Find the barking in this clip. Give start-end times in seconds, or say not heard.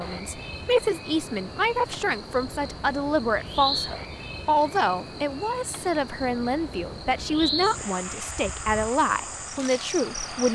not heard.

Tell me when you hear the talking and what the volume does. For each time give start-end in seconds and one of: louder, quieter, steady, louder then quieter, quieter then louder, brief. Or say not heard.
0.0-10.5 steady.